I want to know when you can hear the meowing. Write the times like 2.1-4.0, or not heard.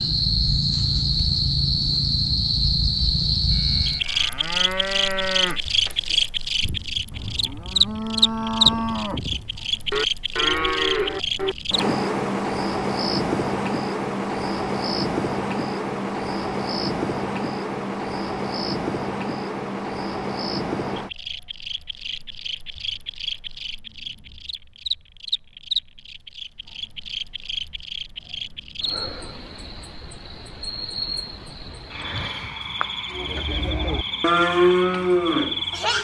not heard.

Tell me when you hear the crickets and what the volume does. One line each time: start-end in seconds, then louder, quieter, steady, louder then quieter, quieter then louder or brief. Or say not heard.
0.0-35.9 quieter.